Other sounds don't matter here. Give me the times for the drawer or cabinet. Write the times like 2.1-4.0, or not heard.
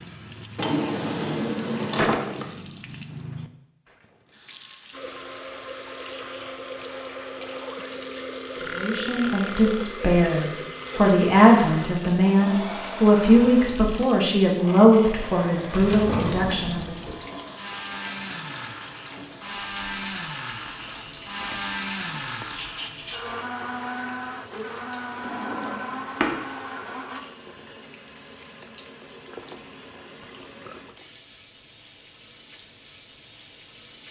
0.6-2.5, 15.7-17.1, 25.2-26.4.